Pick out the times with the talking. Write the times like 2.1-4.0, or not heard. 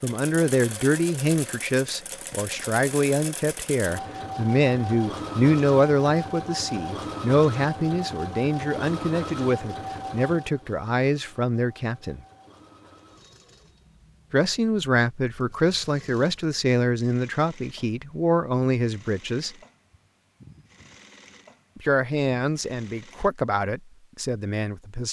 0.0-12.2, 14.3-19.5, 21.8-25.0.